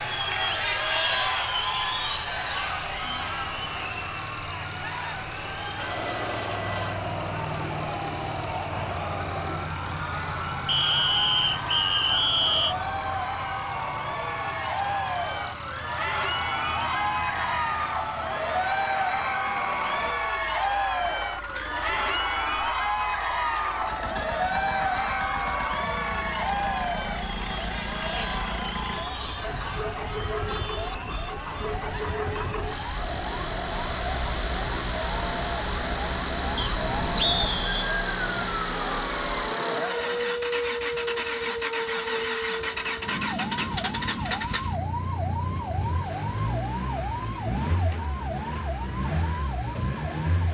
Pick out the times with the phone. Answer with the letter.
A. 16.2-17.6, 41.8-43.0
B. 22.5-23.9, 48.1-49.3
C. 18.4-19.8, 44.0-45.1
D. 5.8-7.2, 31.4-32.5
D.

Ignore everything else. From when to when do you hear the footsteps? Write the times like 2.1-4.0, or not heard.
not heard.